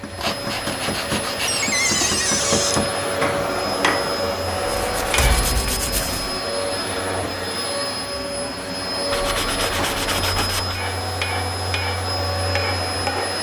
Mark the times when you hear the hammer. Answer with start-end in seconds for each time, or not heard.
0.0-5.7, 10.8-13.3.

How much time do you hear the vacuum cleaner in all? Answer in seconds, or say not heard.
13 s.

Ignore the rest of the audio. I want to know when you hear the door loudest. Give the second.
2 s.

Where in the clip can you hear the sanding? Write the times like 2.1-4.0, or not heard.
0.1-2.2, 4.7-6.4, 9.1-10.8.